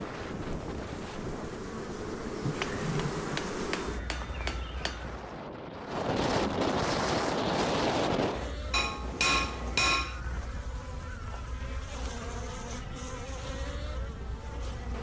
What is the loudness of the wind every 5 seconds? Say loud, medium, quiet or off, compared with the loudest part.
medium, loud, quiet.